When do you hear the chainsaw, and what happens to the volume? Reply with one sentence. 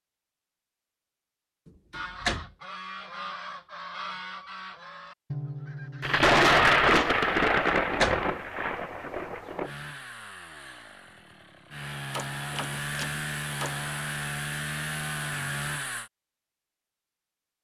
The chainsaw can be heard from 9.6 to 16.1 s, getting louder.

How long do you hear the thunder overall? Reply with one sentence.
The thunder can be heard for 4 seconds in total.